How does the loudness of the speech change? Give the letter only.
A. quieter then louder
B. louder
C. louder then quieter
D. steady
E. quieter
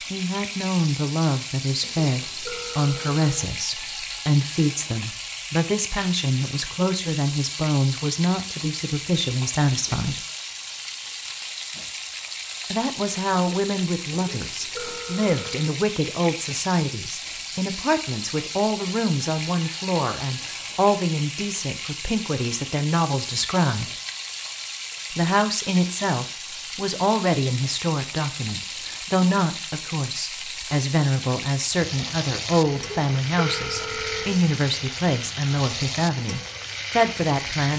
D.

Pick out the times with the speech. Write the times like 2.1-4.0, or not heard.
0.1-10.2, 12.7-23.9, 25.1-37.7.